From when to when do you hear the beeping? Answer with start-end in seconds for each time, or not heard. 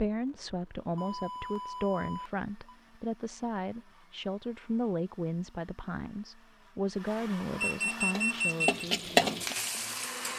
0.9-2.8, 7.6-8.7.